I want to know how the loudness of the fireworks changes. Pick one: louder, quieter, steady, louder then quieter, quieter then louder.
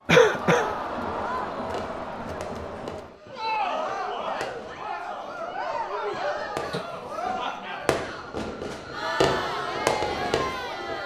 louder.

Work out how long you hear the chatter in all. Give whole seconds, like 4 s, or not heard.
11 s.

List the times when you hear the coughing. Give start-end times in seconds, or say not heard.
0.1-0.8, 6.7-7.3.